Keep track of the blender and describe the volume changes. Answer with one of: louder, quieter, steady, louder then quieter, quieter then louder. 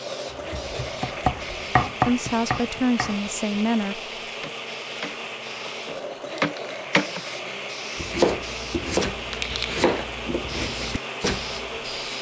steady.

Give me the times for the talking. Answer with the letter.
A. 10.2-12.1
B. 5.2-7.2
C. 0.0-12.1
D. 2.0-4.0
D.